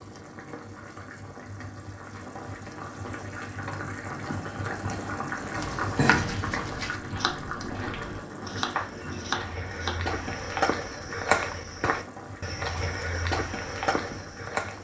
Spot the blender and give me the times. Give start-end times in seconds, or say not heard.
not heard.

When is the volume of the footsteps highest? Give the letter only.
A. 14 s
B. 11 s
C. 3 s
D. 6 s
B.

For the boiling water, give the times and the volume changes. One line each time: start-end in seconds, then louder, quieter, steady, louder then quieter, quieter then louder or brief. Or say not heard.
0.0-14.7 louder then quieter.